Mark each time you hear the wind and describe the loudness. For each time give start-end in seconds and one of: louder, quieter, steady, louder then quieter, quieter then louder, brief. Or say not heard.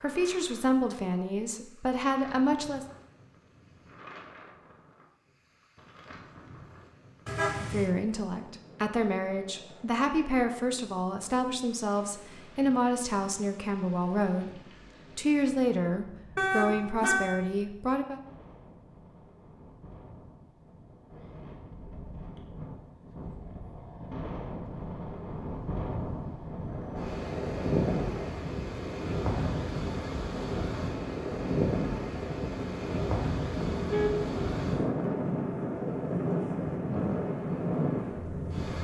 0.0-38.7 louder.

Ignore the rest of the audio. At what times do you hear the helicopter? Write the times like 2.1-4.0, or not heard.
26.6-38.7.